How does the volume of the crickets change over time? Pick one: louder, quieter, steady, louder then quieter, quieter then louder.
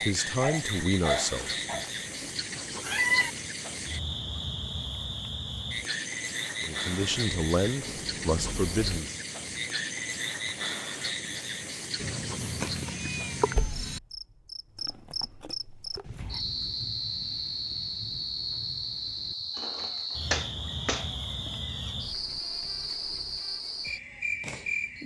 steady.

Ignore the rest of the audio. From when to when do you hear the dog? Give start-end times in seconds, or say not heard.
0.0-1.9.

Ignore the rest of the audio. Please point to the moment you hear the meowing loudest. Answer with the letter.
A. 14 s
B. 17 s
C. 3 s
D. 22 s
C.